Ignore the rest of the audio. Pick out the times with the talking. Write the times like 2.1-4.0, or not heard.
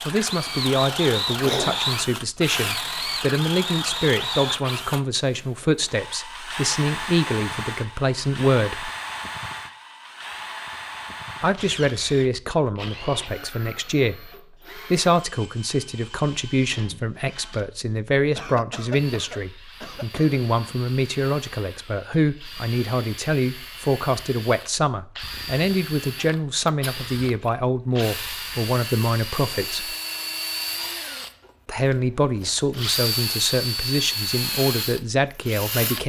0.1-8.9, 11.4-29.9, 31.6-36.0.